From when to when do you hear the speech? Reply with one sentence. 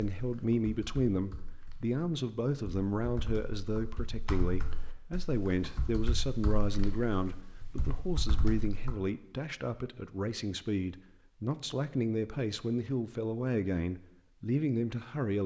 You can hear the speech from 0.0 to 15.4 s.